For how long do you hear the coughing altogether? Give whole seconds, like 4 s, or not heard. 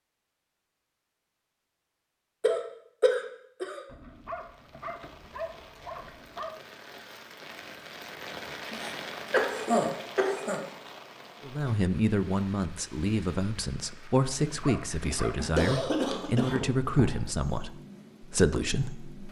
5 s.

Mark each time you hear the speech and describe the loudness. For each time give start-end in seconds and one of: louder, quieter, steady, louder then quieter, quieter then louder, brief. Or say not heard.
11.4-19.1 steady.